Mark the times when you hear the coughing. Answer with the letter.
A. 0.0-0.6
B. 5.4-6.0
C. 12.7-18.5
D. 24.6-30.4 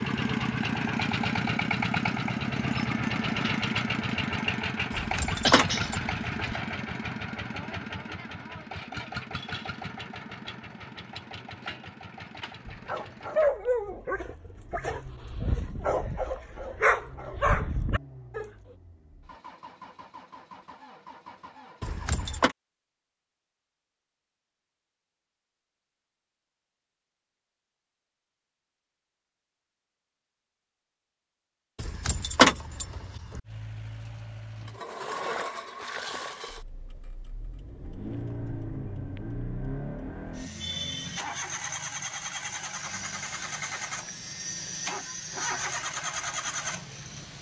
B.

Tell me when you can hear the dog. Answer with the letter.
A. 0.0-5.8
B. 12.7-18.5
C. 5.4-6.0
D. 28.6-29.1
B.